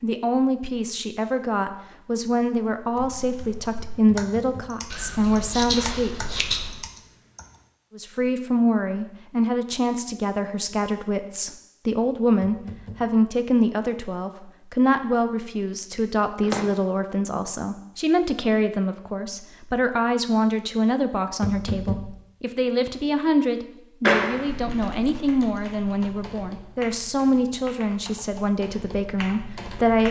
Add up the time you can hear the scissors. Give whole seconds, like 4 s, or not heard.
4 s.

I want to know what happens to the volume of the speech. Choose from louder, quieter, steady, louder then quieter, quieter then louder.
steady.